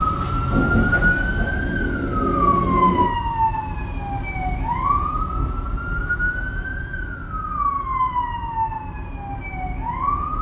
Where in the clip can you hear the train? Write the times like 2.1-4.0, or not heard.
0.0-3.1.